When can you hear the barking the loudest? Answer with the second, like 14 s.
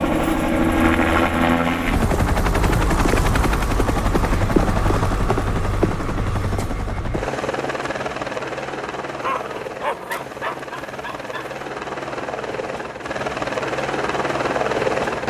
10 s.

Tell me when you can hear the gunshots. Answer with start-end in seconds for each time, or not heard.
not heard.